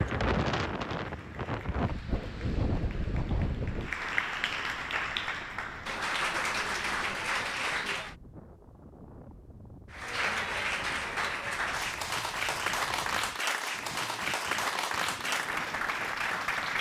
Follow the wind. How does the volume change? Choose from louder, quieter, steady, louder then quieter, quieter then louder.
quieter.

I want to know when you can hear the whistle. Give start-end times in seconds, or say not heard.
not heard.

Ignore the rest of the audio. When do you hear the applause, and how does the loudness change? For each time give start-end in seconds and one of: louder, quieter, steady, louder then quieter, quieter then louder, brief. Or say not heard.
0.0-8.2 louder
9.9-16.7 steady.